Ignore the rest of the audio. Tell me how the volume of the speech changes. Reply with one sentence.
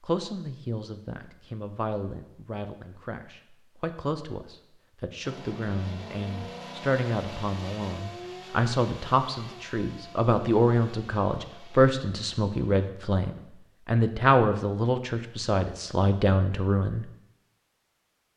The loudness of the speech goes up.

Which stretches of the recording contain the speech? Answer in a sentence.
The speech can be heard from 0.0 to 17.1 s.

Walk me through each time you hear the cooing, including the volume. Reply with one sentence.
You can't hear the cooing here.